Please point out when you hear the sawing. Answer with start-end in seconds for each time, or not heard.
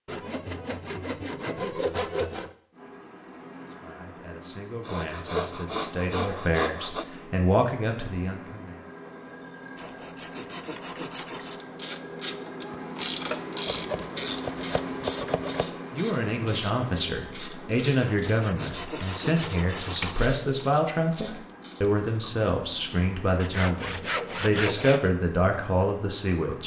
0.1-2.5, 4.8-7.0, 9.8-11.7, 13.7-15.7, 18.0-20.3, 23.4-25.1.